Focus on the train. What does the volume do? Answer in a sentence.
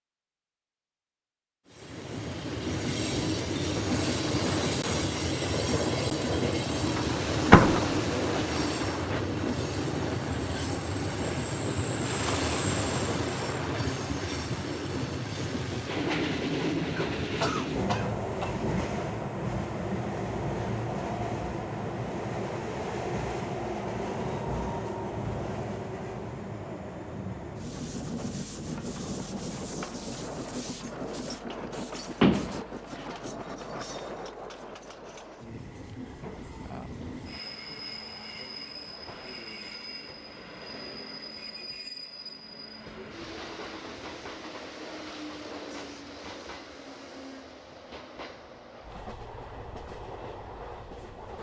The loudness of the train goes down.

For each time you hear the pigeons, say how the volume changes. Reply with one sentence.
The pigeons can't be heard in this clip.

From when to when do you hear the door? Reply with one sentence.
You can hear the door from 7.0 to 8.0 s and from 32.2 to 33.0 s.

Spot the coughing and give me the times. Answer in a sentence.
You can hear the coughing from 16.9 to 18.6 s.